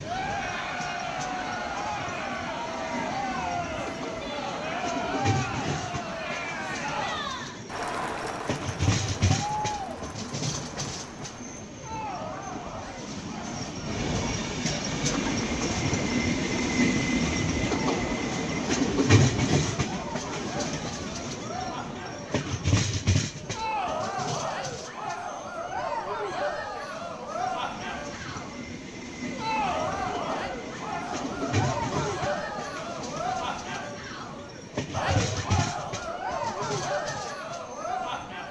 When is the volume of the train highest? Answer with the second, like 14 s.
19 s.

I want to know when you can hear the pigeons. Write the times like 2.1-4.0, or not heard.
not heard.